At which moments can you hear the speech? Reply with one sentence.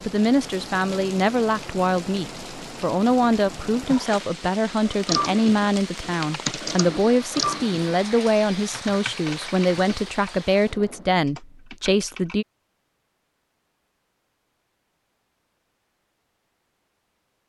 The speech can be heard from 0.0 to 12.4 s.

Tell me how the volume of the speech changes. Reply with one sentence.
The volume of the speech stays about the same.